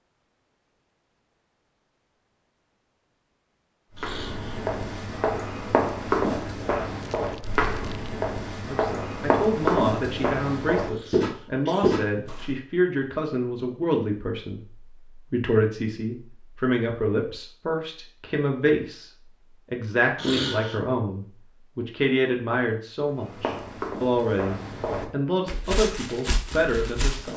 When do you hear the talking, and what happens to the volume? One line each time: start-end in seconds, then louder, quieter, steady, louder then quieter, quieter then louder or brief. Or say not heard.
8.7-27.3 steady.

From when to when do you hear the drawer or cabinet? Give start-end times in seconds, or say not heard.
not heard.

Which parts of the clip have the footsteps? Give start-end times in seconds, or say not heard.
4.0-12.6, 23.1-27.3.